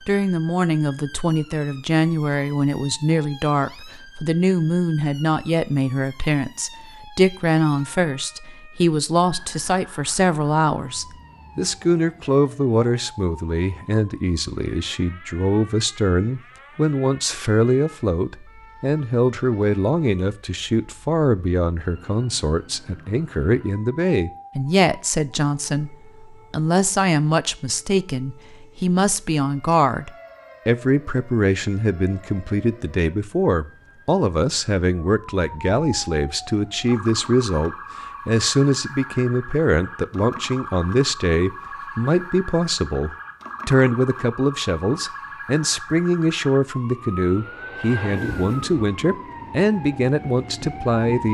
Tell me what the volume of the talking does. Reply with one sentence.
The loudness of the talking stays about the same.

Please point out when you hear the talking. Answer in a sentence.
The talking can be heard from 0.1 to 51.2 s.